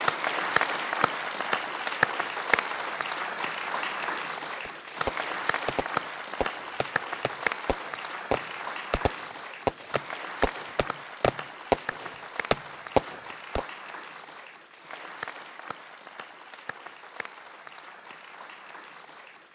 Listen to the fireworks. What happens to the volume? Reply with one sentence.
The loudness of the fireworks goes down, then up.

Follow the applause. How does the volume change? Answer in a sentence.
The volume of the applause goes down.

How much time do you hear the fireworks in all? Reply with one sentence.
You can hear the fireworks for 9 seconds altogether.